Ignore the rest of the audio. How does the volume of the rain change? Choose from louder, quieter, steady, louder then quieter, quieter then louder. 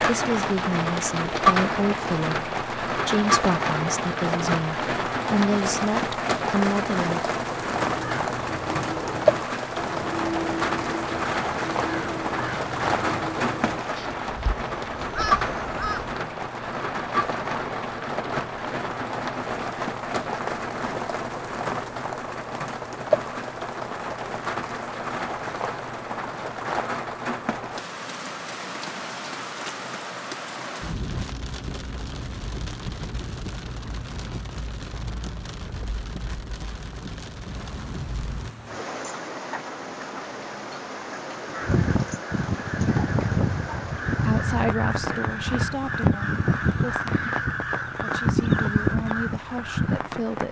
quieter.